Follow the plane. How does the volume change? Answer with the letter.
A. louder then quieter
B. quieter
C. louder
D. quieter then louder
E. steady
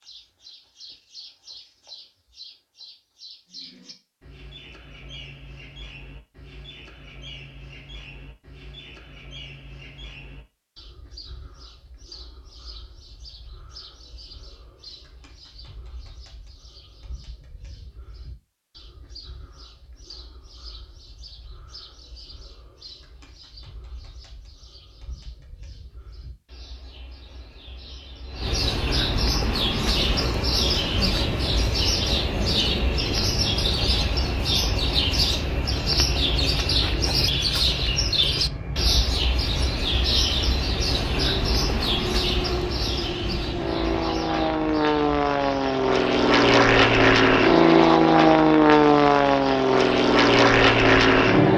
C.